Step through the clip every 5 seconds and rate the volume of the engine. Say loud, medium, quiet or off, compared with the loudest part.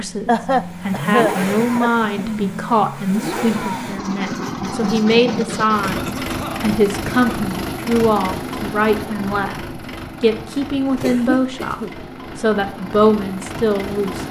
loud, loud, medium.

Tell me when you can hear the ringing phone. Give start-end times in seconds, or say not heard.
not heard.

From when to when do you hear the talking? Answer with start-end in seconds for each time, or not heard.
0.0-14.2.